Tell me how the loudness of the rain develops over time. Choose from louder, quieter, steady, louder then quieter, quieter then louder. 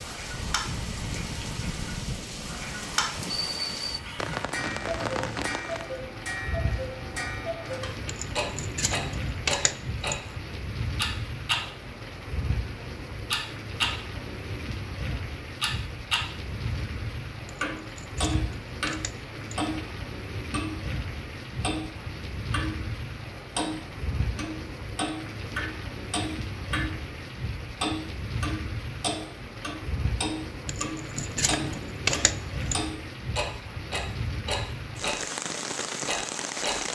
steady.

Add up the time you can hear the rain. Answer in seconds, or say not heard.
37 s.